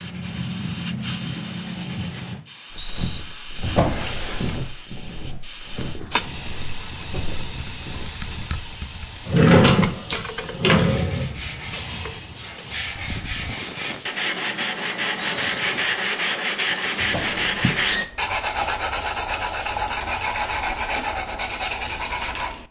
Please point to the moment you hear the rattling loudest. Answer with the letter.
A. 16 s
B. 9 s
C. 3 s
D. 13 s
C.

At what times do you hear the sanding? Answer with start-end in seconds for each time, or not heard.
0.0-2.4, 10.8-22.6.